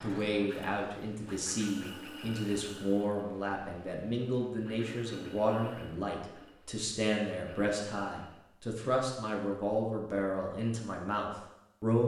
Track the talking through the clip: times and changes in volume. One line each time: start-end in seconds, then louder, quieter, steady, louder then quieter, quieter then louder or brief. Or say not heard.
0.0-12.0 steady.